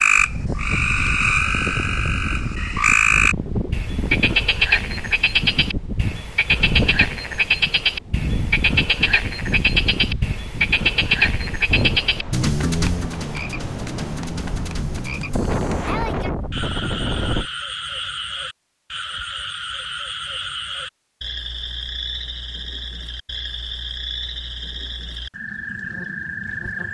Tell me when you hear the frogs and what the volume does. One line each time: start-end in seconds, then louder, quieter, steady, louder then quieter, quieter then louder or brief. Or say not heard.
0.0-26.8 quieter.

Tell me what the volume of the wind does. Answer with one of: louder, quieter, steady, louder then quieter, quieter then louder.
steady.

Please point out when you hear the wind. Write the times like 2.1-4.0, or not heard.
0.1-17.5.